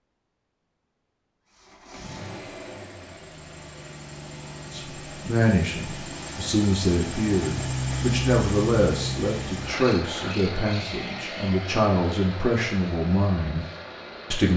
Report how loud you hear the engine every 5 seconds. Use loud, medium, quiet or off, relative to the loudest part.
medium, loud, medium.